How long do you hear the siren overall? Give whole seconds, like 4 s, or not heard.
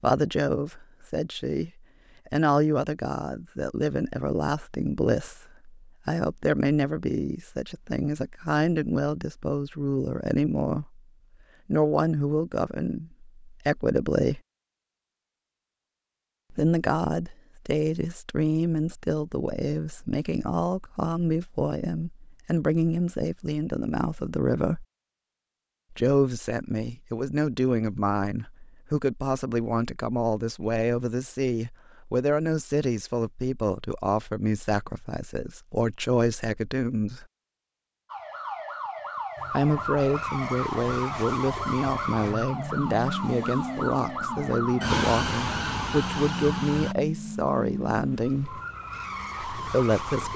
9 s.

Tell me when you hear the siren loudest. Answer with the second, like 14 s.
45 s.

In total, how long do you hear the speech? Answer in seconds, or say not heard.
43 s.